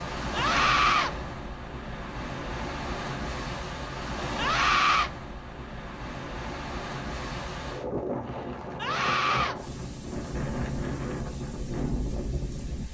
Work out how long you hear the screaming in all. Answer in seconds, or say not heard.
2 s.